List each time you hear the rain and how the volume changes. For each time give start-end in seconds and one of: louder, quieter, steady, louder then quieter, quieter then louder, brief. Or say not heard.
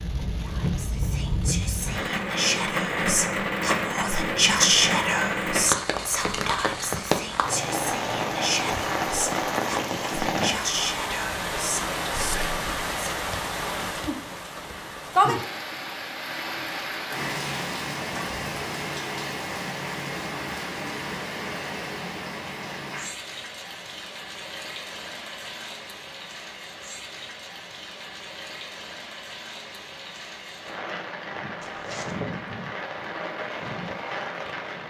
0.0-34.8 quieter.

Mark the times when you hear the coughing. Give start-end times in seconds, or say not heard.
not heard.